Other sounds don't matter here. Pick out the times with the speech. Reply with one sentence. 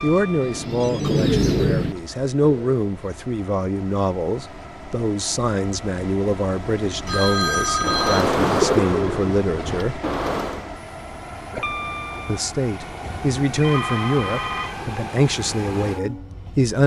The speech can be heard from 0.0 to 10.0 s and from 12.2 to 16.8 s.